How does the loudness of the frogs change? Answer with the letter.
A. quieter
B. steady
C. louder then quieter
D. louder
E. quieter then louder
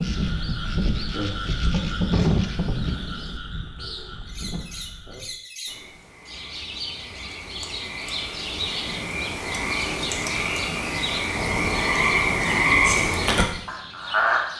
E.